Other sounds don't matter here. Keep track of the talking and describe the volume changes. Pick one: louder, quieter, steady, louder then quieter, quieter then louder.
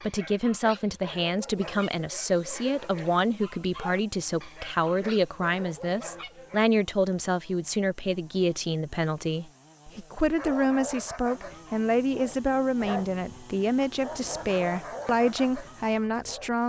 steady.